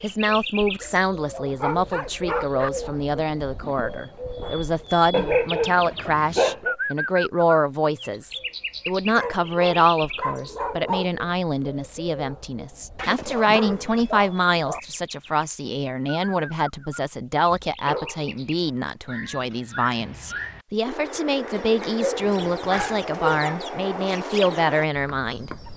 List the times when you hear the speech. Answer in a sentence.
The speech can be heard from 0.0 to 25.5 s.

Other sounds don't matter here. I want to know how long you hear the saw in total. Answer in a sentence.
You can't hear the saw here.